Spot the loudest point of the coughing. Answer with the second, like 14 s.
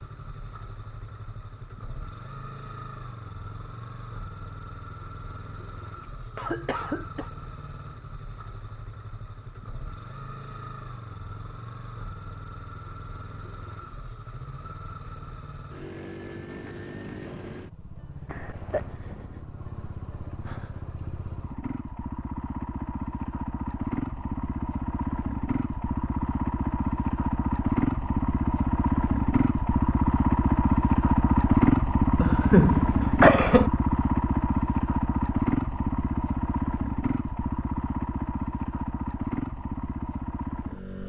33 s.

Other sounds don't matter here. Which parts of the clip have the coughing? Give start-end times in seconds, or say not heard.
6.0-7.3, 18.2-18.9, 32.2-33.7.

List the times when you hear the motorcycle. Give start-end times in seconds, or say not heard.
0.0-41.0.